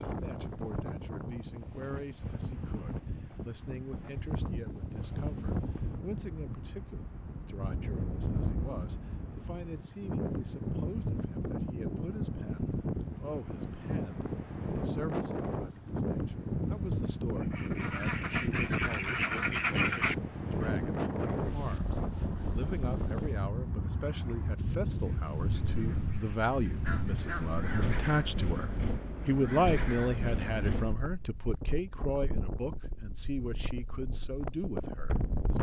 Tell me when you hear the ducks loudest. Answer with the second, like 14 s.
20 s.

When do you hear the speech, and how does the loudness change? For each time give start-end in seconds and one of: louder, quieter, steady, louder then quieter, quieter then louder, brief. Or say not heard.
0.1-35.5 louder.